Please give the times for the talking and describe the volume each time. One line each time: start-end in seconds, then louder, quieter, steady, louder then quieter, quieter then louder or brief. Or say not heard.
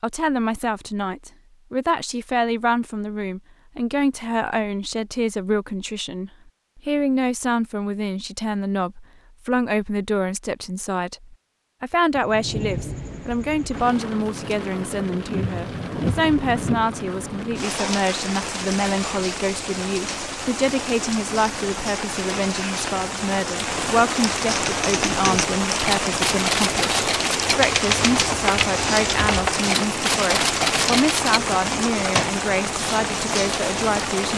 0.0-34.3 steady.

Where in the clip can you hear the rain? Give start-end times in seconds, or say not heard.
12.1-34.3.